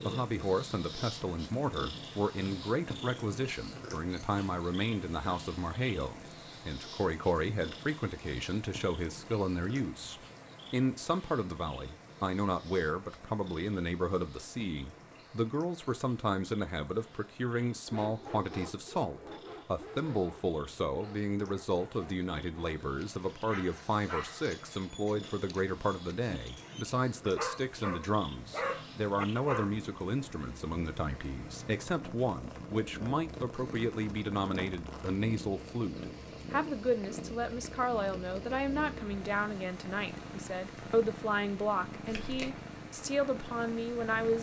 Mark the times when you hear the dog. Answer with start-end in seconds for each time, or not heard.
17.9-29.8.